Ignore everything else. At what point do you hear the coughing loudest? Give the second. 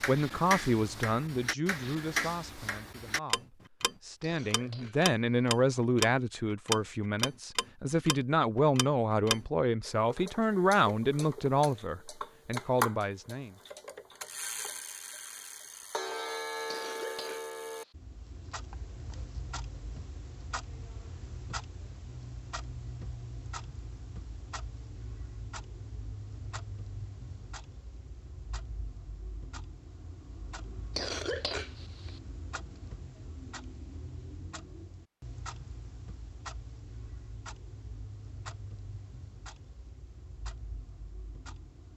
31 s.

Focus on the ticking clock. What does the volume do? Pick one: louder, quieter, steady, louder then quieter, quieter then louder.
quieter.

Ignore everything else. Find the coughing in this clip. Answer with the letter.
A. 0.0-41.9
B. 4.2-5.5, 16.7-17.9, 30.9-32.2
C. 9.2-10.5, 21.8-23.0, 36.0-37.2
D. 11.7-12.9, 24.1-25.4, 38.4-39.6
B.